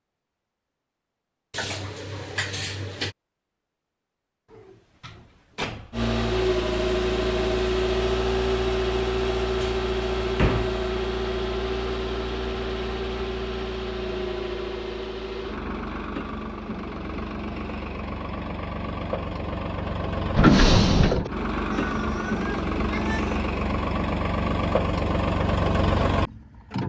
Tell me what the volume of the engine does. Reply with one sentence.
The volume of the engine goes down, then up.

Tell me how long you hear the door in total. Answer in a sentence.
You can hear the door for 4 seconds altogether.